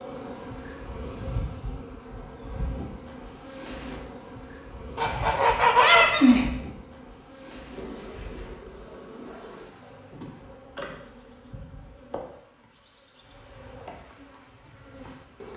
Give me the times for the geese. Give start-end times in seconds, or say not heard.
5.0-6.5.